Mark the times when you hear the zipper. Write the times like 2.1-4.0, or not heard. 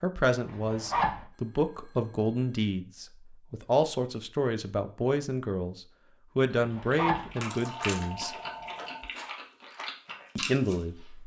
0.5-1.2, 6.5-7.3.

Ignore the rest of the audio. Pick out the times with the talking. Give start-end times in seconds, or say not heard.
0.0-8.3, 10.3-11.2.